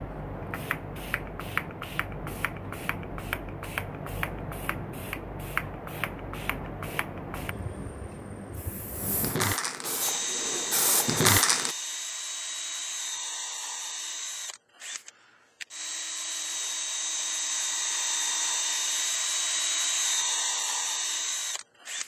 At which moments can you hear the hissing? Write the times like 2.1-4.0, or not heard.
0.0-11.8.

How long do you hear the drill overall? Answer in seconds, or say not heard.
12 s.